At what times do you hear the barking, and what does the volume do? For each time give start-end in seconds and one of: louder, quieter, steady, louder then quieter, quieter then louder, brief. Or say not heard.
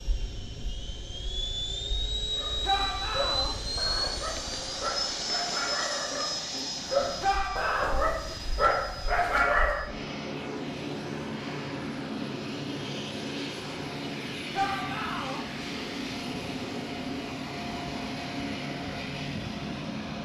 2.3-9.9 louder.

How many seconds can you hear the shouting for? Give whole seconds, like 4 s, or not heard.
3 s.